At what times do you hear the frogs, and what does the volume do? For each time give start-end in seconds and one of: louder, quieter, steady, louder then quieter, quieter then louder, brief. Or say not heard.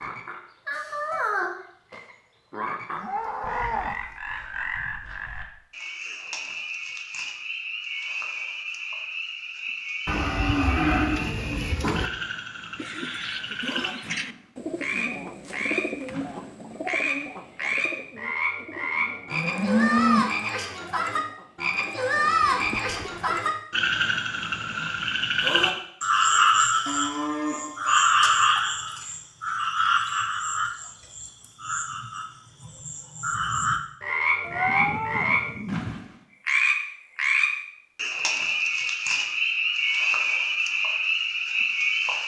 0.0-42.2 louder.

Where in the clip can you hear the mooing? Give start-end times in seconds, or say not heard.
3.0-4.0, 10.1-12.1, 19.3-20.2, 26.9-27.9, 34.4-36.0.